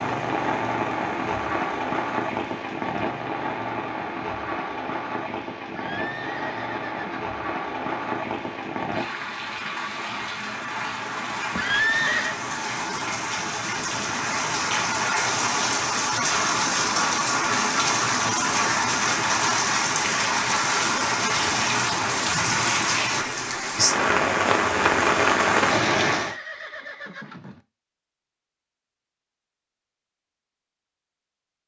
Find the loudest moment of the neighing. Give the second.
12 s.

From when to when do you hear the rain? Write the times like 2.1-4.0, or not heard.
0.0-26.4.